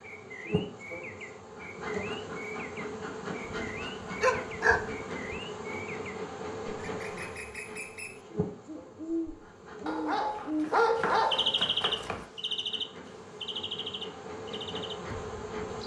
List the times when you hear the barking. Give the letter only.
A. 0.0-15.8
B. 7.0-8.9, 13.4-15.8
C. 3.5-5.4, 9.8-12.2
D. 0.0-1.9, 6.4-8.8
C.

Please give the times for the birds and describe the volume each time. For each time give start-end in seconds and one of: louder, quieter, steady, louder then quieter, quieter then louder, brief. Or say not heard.
0.0-15.8 louder then quieter.